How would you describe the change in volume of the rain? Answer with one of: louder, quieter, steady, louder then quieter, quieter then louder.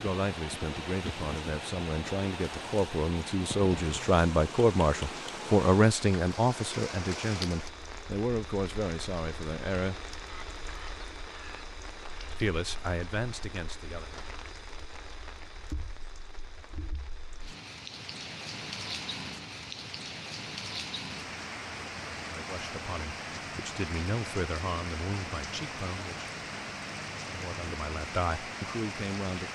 quieter then louder.